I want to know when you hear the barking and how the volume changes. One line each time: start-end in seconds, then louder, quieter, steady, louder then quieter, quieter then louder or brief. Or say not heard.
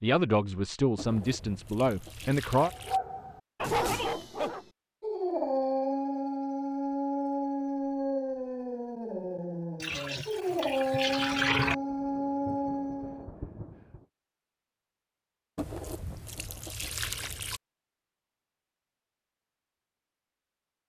2.5-13.3 steady.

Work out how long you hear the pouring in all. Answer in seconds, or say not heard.
6 s.